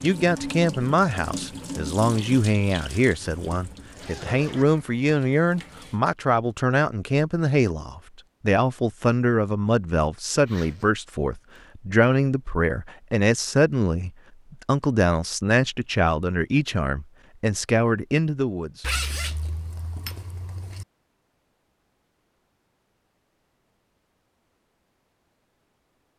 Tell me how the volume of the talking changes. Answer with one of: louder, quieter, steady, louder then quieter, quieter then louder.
steady.